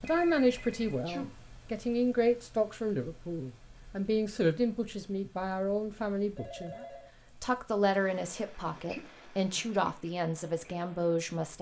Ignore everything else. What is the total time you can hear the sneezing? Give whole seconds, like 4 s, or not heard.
2 s.